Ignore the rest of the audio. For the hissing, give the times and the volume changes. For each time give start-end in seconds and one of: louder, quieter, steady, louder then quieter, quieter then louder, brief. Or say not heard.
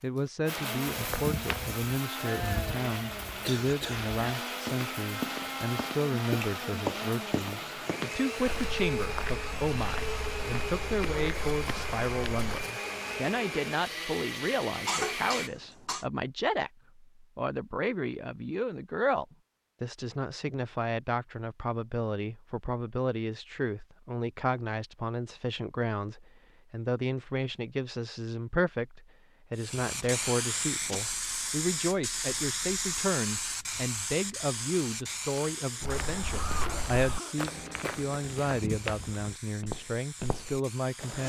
29.6-41.2 quieter.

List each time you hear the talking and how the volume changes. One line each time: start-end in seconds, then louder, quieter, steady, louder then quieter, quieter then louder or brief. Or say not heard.
0.0-41.2 steady.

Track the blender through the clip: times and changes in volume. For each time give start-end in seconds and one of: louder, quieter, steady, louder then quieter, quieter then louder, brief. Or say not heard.
0.1-15.5 steady.